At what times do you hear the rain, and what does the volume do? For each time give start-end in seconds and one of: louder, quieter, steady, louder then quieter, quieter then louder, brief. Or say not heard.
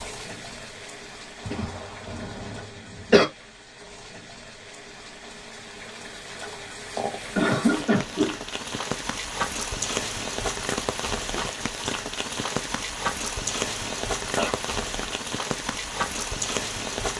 0.0-17.1 louder.